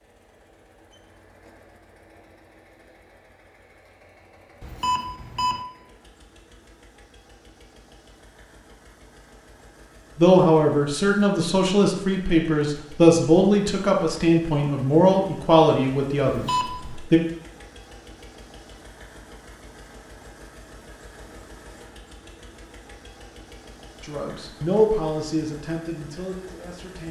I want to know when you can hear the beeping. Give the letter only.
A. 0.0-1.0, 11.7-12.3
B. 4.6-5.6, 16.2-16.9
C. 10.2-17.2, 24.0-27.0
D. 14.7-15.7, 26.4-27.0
B.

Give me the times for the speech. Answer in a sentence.
You can hear the speech from 10.2 to 17.2 s and from 24.0 to 27.0 s.